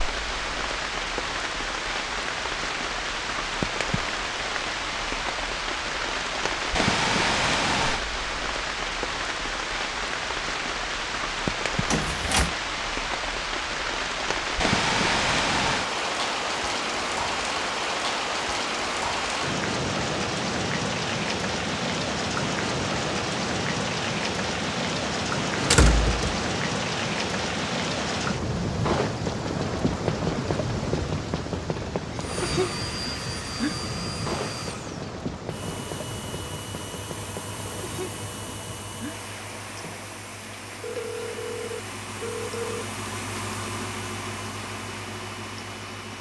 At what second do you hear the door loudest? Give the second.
26 s.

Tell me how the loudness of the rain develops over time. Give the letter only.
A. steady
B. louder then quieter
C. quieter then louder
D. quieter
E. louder
D.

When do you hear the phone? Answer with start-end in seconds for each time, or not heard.
40.8-42.9.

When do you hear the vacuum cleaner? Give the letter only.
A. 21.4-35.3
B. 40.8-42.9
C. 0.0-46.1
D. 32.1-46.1
D.